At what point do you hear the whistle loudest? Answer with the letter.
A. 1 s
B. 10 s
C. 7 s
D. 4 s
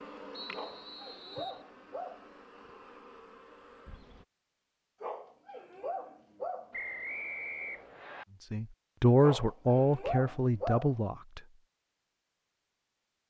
C.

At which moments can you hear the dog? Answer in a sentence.
The dog can be heard from 0.5 to 2.3 s, from 5.0 to 6.8 s and from 9.2 to 10.9 s.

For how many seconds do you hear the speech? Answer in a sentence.
The speech can be heard for 3 seconds in total.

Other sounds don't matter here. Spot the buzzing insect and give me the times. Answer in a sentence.
You can hear the buzzing insect from 0.0 to 4.2 s.